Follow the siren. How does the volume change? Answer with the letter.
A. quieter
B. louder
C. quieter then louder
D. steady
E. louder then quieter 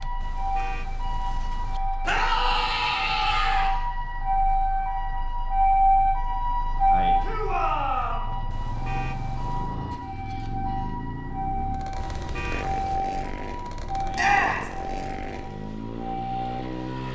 E.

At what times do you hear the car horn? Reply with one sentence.
The car horn can be heard from 0.2 to 1.8 s, from 8.5 to 9.8 s and from 11.9 to 13.0 s.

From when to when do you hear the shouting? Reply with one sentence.
The shouting can be heard from 2.0 to 3.7 s, from 7.2 to 8.3 s and from 14.2 to 14.7 s.